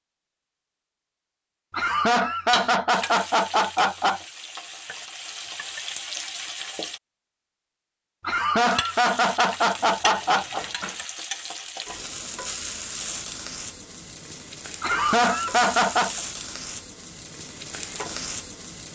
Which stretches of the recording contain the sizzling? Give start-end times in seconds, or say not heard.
2.9-7.0, 8.7-18.8.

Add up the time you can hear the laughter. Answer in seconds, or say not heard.
6 s.